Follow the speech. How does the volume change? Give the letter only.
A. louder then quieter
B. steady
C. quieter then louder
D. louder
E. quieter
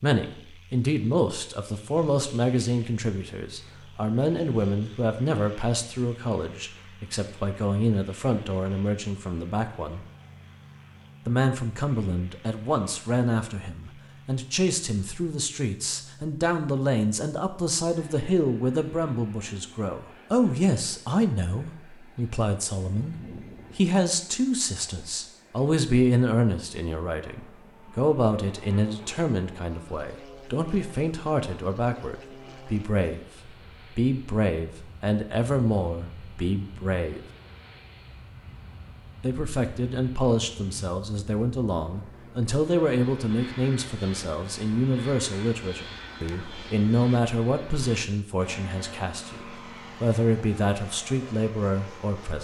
B.